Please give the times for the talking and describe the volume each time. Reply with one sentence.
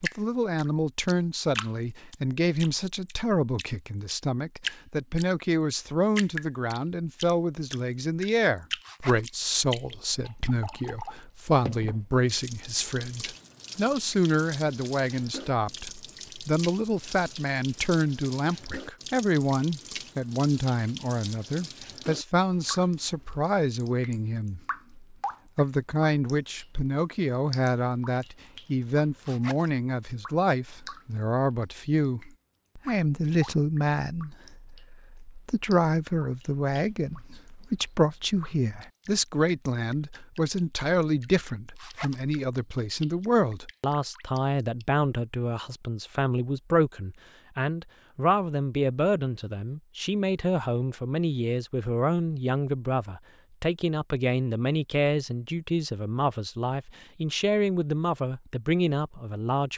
The talking can be heard from 0.0 to 59.7 s, at a steady volume.